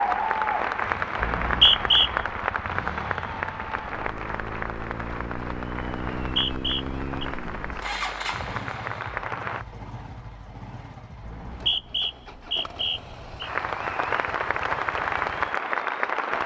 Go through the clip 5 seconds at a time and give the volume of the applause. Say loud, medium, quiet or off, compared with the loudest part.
loud, medium, loud, loud.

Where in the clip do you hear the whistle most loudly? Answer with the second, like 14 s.
2 s.